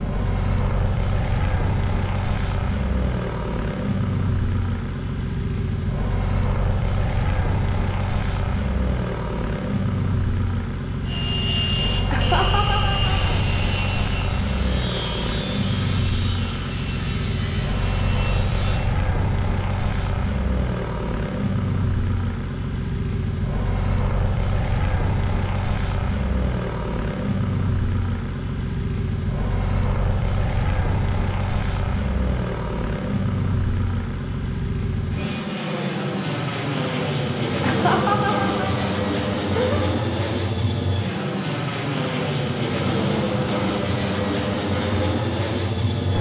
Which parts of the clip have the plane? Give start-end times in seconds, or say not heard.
0.0-46.1.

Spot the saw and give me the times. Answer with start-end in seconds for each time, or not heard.
11.1-18.9.